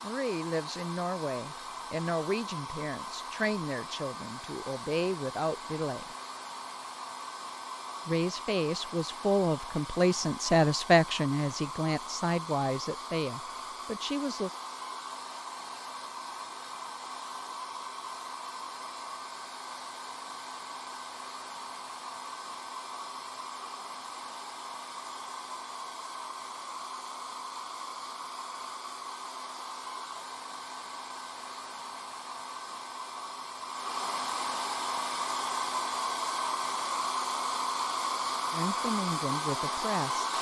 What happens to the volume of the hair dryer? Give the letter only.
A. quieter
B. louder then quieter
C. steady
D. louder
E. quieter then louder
D.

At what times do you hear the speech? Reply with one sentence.
You can hear the speech from 0.0 to 6.1 s, from 8.1 to 14.5 s and from 38.5 to 40.3 s.